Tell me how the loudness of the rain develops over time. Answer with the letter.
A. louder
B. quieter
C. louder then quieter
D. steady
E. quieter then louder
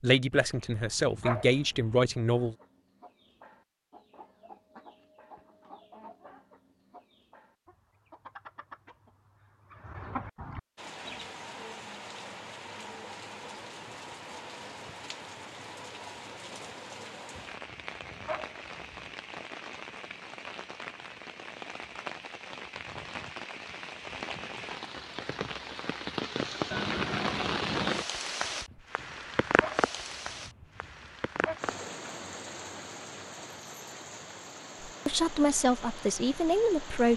C.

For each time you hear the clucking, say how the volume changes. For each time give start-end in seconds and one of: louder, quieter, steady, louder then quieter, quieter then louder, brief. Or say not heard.
2.2-11.2 louder.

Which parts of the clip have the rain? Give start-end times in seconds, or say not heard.
10.8-37.1.